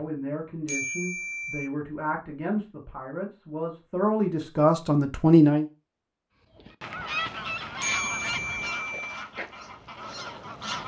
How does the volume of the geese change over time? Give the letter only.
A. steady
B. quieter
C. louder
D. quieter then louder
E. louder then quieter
B.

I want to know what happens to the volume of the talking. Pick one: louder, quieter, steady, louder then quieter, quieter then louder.
louder.